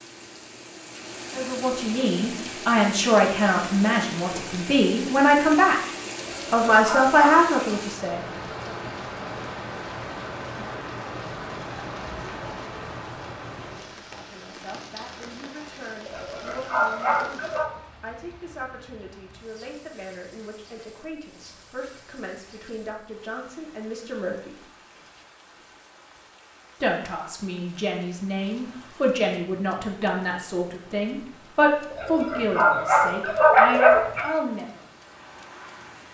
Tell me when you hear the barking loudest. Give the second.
34 s.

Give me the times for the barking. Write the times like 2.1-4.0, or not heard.
6.2-7.8, 16.1-17.7, 31.9-34.2.